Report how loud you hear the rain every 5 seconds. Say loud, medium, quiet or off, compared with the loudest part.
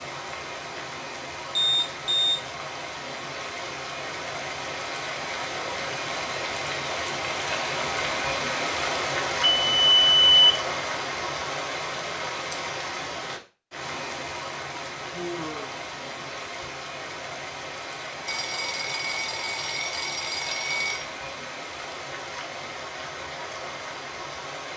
medium, loud, loud, medium, medium.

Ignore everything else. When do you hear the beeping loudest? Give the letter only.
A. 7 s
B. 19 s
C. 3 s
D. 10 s
D.